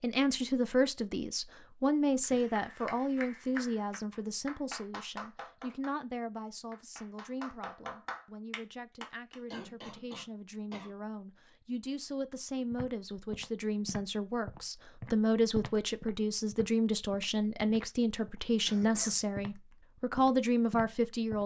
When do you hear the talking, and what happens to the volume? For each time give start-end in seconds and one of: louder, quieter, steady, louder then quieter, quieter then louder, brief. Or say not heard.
0.0-21.4 quieter then louder.